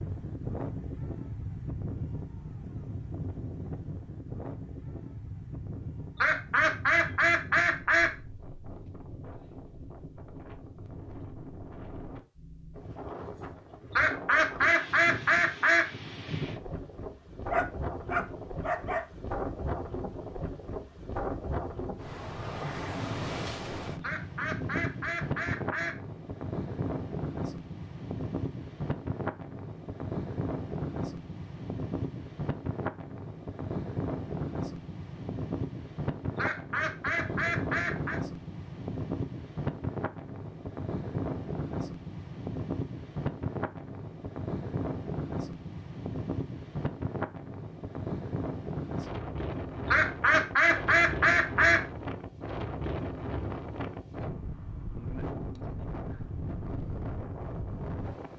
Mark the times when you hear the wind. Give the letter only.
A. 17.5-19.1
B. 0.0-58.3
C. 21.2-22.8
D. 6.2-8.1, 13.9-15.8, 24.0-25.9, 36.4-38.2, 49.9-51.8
B.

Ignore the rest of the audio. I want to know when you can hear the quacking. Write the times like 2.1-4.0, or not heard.
6.2-8.1, 13.9-15.8, 24.0-25.9, 36.4-38.2, 49.9-51.8.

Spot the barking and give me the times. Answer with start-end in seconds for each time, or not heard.
17.5-19.1.